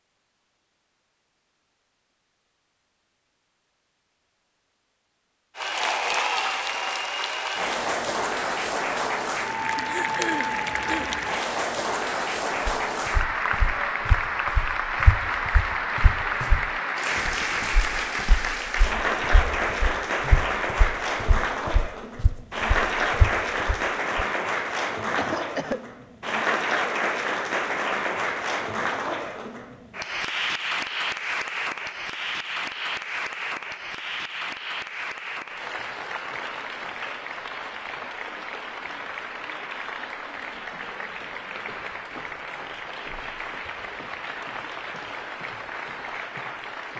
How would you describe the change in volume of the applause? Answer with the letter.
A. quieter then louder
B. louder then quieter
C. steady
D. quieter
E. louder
D.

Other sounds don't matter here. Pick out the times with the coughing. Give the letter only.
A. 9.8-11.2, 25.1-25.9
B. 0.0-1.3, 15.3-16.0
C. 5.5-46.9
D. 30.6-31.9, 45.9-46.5
A.